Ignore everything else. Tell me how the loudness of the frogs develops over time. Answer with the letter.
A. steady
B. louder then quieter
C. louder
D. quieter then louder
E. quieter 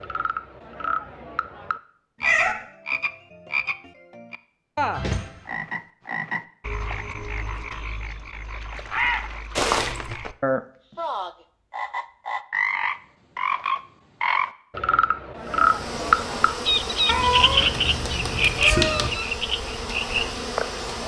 C.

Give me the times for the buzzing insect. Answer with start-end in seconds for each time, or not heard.
15.4-21.0.